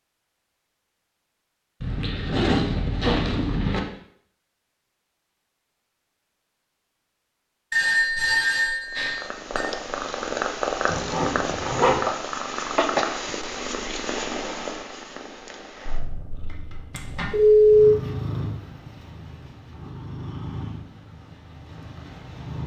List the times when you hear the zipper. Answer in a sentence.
You can hear the zipper from 1.8 to 3.8 s, from 10.8 to 12.0 s and from 16.5 to 17.3 s.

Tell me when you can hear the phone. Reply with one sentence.
The phone can be heard from 7.7 to 9.7 s and from 16.9 to 17.9 s.